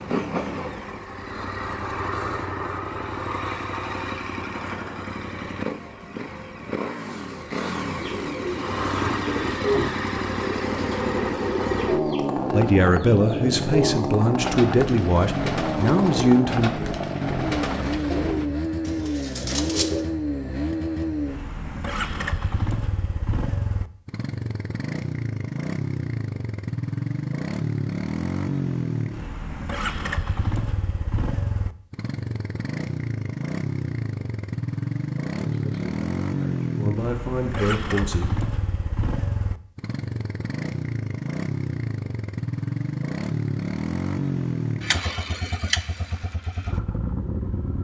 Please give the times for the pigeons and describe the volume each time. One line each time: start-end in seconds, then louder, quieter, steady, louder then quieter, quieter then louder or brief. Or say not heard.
8.0-20.1 steady.